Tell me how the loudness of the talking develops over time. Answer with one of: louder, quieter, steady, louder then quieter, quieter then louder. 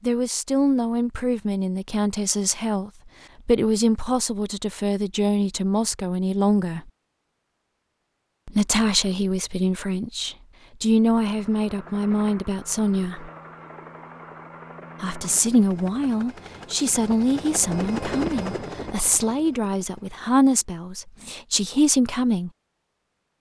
steady.